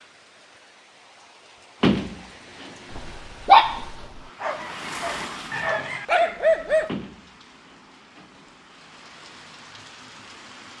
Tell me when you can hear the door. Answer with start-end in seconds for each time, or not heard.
1.8-2.7, 6.8-8.4.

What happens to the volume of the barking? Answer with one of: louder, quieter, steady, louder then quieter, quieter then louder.
quieter then louder.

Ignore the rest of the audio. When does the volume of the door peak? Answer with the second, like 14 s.
2 s.